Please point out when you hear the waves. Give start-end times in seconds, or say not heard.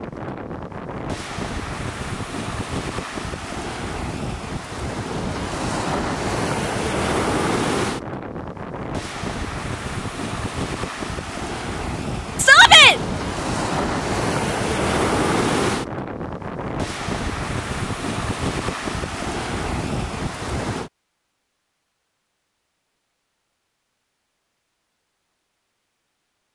0.0-20.9.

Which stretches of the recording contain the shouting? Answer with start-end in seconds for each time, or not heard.
12.3-12.9.